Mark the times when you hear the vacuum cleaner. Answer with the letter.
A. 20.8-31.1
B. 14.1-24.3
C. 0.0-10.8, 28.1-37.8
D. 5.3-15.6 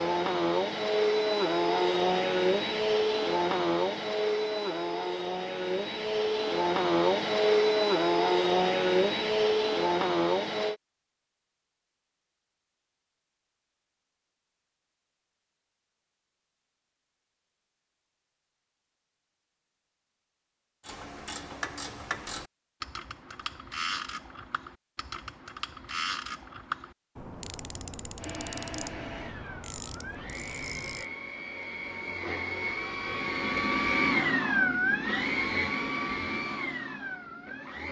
C.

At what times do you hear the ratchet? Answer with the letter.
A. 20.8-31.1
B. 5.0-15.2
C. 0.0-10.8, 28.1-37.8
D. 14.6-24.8
A.